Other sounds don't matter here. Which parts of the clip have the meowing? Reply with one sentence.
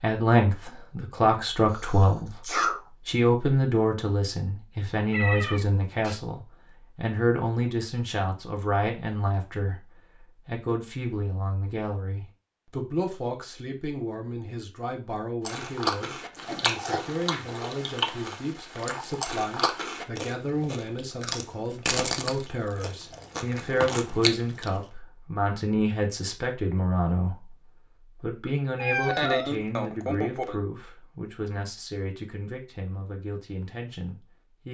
The meowing can be heard from 5.1 to 6.2 s and from 28.8 to 29.5 s.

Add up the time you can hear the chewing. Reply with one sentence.
You can hear the chewing for 9 seconds altogether.